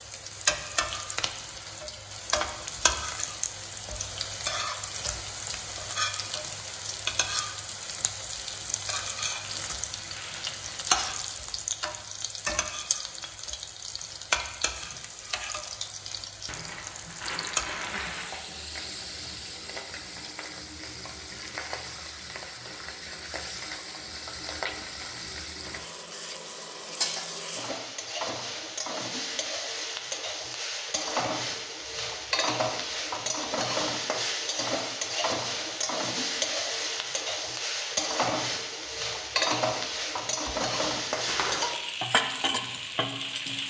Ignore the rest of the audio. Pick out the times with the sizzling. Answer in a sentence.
The sizzling can be heard from 0.0 to 43.6 s.